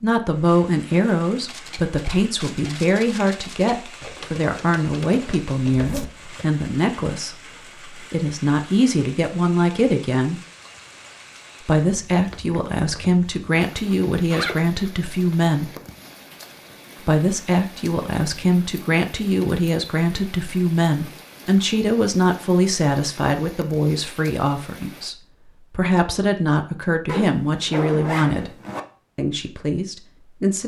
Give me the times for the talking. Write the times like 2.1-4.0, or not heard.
0.0-10.4, 11.6-15.8, 17.0-28.5, 29.1-30.6.